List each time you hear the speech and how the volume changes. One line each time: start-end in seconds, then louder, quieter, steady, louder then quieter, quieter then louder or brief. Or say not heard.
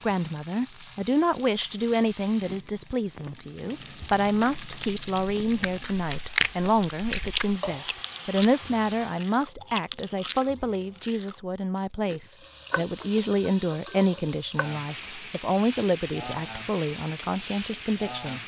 0.0-18.4 steady.